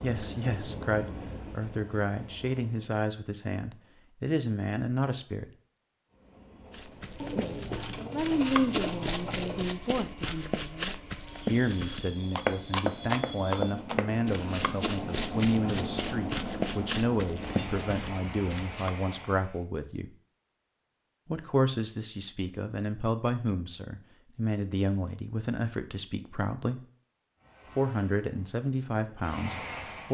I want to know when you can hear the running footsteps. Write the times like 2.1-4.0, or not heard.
6.7-18.9.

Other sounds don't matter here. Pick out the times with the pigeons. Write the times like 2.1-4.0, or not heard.
7.2-9.8.